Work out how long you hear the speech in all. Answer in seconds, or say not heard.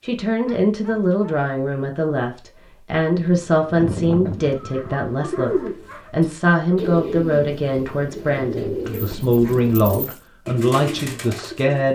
12 s.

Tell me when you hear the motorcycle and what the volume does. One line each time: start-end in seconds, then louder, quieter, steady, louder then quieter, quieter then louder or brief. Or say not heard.
not heard.